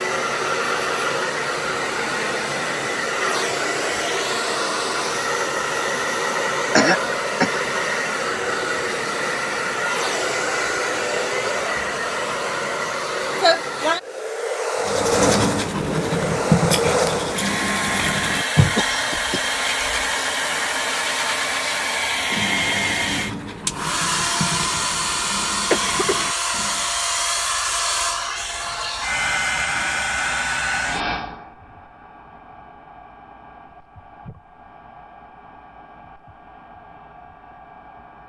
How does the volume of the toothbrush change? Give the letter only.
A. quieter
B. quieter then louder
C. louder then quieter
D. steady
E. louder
A.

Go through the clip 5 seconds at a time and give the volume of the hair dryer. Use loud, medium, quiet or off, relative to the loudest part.
loud, loud, loud, loud, loud, loud, medium, quiet.